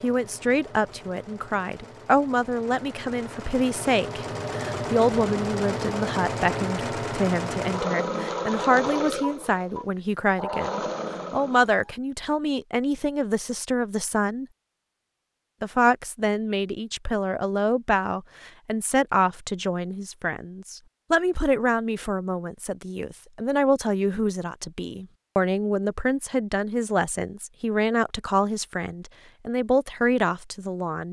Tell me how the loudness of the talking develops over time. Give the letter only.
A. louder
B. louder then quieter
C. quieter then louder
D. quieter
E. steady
E.